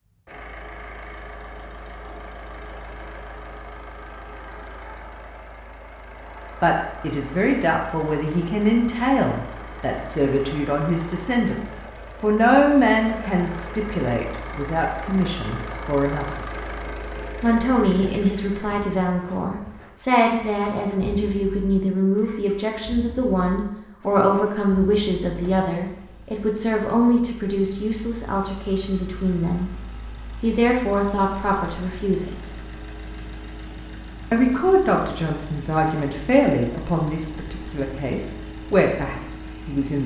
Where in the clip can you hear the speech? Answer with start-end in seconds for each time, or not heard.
6.6-16.4, 17.4-29.7, 30.4-32.5, 34.3-40.0.